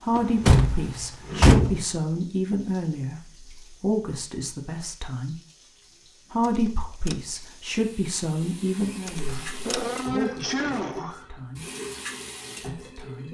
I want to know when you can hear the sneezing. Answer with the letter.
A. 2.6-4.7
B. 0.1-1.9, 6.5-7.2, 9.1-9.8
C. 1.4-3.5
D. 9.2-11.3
D.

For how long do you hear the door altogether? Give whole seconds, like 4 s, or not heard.
3 s.